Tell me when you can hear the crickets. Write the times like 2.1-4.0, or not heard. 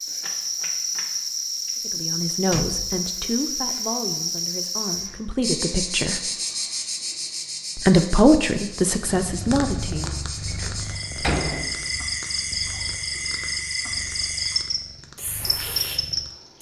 0.0-16.5.